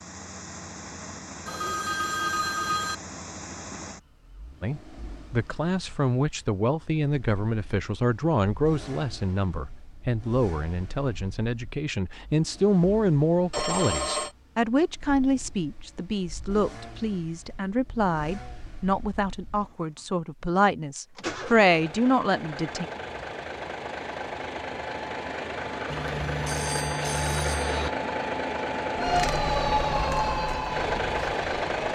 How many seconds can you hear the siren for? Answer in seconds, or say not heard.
3 s.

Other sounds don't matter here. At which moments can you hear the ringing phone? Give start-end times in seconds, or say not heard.
1.4-3.0, 13.5-14.3, 25.9-27.9.